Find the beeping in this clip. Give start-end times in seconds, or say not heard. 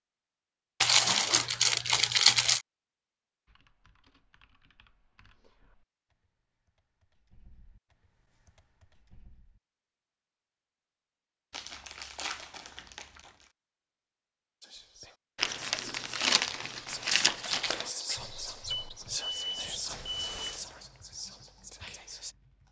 18.8-20.6.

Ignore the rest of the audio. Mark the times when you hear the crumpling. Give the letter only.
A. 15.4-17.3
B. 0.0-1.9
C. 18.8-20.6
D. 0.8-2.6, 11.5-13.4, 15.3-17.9
D.